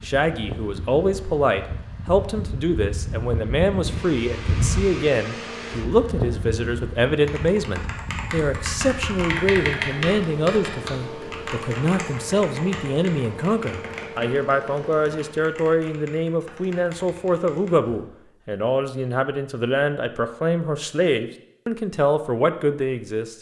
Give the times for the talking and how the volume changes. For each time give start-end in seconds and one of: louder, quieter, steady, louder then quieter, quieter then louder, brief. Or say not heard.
0.0-23.3 steady.